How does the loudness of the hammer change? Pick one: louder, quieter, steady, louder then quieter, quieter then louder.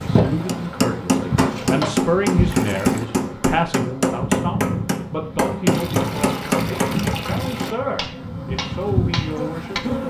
quieter.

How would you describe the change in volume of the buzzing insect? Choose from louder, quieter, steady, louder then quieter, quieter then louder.
quieter then louder.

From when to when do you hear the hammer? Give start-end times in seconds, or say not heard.
0.5-9.8.